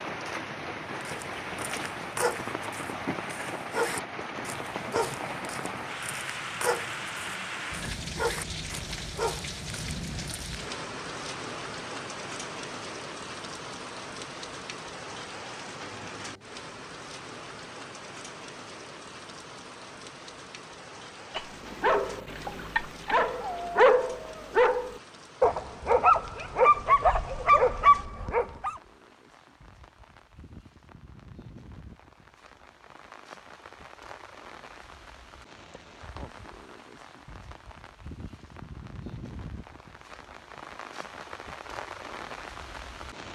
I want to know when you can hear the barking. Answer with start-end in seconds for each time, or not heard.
1.0-10.6, 21.4-28.7.